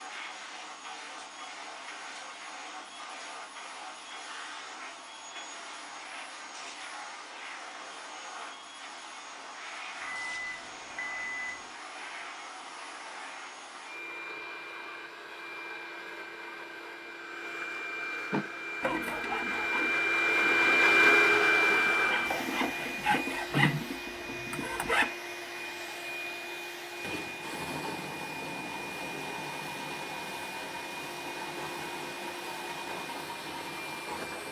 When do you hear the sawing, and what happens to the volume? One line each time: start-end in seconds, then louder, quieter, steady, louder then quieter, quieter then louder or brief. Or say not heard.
18.3-25.1 quieter then louder.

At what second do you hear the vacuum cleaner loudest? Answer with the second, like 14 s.
21 s.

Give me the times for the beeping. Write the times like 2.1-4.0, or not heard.
10.0-11.8.